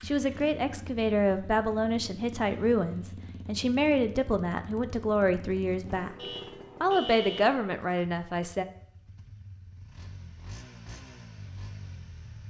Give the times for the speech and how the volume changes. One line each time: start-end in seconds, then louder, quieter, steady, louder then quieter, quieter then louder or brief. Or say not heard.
0.1-6.2 steady
6.8-8.7 brief.